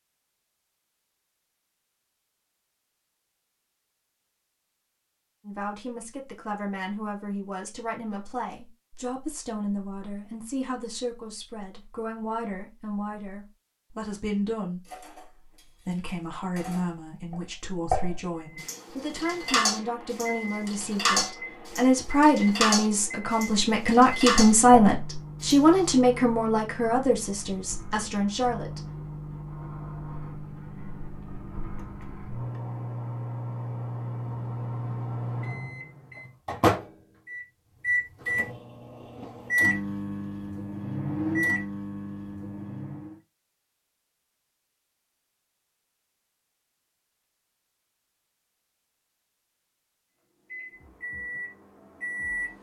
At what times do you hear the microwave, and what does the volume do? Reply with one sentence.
The microwave can be heard from 18.4 to 43.1 s, getting louder; and briefly from 50.5 to 52.5 s.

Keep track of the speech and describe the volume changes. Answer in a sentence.
The volume of the speech goes up.